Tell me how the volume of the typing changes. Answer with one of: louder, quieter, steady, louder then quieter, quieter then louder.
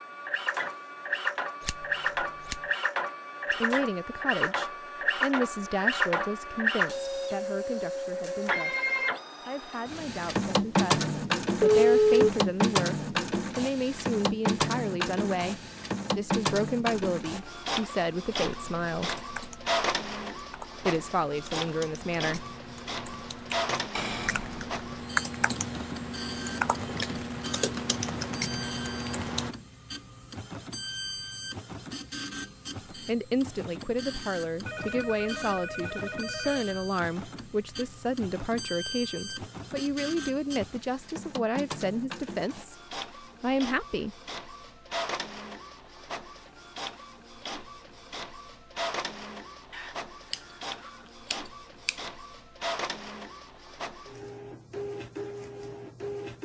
louder.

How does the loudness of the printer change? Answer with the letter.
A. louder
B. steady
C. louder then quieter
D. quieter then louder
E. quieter
E.